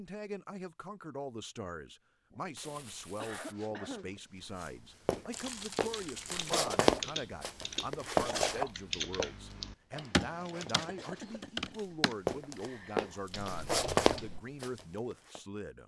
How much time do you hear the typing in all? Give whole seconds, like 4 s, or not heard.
9 s.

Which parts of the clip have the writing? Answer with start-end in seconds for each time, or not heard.
not heard.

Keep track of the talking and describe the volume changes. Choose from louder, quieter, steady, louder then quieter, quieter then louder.
steady.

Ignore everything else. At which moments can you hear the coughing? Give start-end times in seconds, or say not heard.
2.3-4.2, 10.8-11.8.